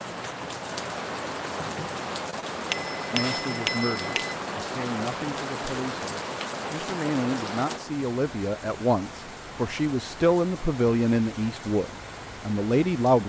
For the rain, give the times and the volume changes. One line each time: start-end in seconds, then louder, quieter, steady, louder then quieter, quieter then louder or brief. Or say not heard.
0.0-13.2 quieter.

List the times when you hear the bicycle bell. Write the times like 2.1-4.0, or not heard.
2.6-4.3.